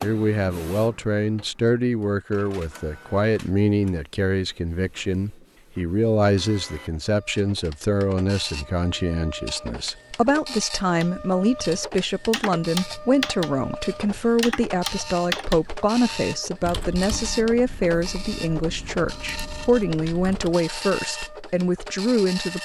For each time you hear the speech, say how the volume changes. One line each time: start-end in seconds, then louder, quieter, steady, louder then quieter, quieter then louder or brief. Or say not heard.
0.0-22.6 steady.